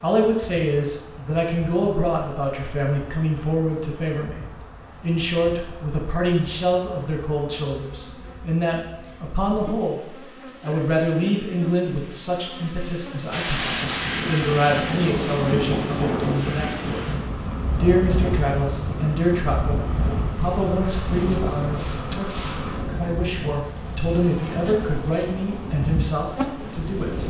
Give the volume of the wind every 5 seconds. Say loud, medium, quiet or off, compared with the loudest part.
off, off, loud, loud, medium, medium.